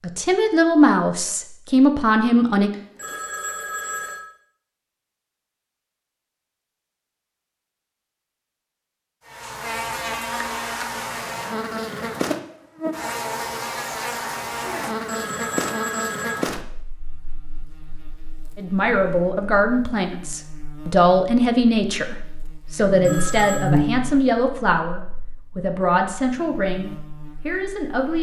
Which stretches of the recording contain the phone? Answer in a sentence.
The phone can be heard from 2.7 to 4.2 s, from 15.1 to 16.4 s and from 23.0 to 23.7 s.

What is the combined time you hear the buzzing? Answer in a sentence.
You can hear the buzzing for 19 seconds altogether.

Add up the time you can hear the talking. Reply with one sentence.
The talking can be heard for 12 seconds in total.